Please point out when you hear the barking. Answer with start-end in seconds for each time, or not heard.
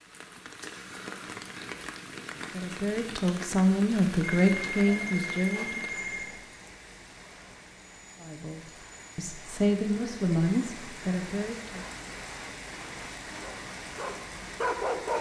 13.3-15.1.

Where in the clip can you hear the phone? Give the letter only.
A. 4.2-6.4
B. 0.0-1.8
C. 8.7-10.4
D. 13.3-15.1
A.